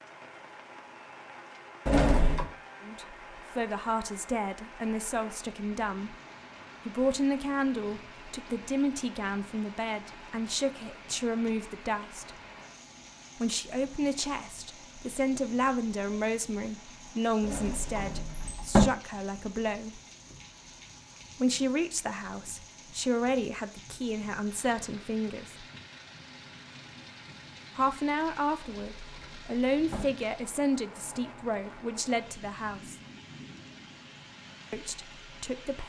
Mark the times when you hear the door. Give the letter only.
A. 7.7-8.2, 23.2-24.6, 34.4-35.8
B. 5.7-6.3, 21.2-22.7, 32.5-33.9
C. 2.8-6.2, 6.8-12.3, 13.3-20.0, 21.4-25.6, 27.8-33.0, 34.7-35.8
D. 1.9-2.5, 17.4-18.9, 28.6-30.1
D.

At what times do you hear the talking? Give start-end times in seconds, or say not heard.
2.8-6.2, 6.8-12.3, 13.3-20.0, 21.4-25.6, 27.8-33.0, 34.7-35.8.